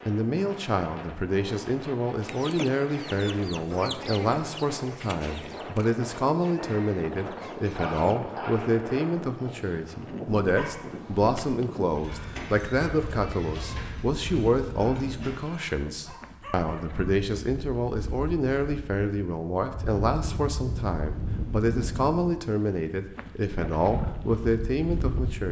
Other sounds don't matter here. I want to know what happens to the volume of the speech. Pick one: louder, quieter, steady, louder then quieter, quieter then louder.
steady.